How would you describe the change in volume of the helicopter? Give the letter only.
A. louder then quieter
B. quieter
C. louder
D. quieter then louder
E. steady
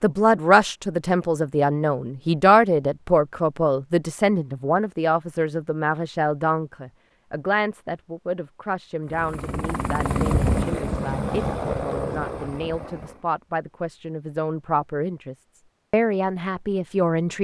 A.